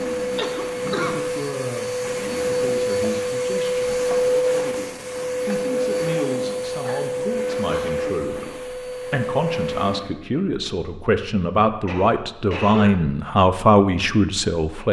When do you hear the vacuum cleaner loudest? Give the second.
4 s.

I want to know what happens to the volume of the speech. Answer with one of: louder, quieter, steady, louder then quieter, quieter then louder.
louder.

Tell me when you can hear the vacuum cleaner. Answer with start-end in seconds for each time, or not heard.
0.0-10.2.